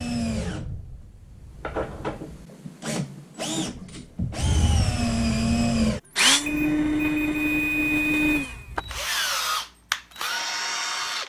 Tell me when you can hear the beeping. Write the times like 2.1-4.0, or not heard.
6.5-9.1.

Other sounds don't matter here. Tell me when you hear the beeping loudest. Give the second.
8 s.